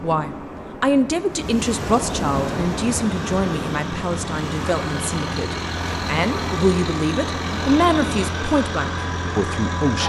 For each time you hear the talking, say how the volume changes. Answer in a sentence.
The talking can be heard from 0.0 to 10.0 s, getting quieter then louder.